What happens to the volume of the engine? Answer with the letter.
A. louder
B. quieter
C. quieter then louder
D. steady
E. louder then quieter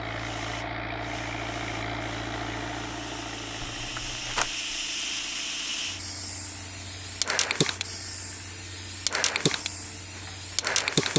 B.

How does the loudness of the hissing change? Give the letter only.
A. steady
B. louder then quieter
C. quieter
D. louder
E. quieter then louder
D.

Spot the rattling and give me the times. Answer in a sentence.
The rattling can be heard from 3.6 to 4.6 s.